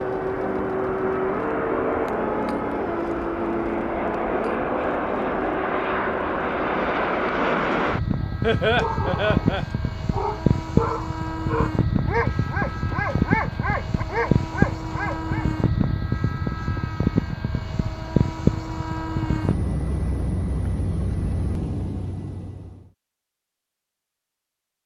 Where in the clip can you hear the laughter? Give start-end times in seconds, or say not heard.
8.4-9.7.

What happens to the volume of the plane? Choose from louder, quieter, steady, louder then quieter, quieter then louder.
steady.